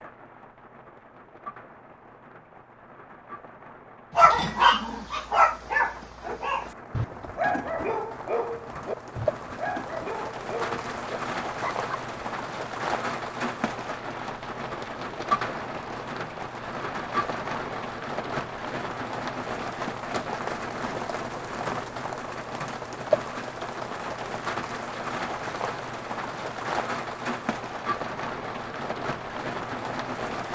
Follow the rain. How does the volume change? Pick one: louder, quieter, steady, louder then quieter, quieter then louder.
louder.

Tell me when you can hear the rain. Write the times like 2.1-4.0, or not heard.
0.0-30.5.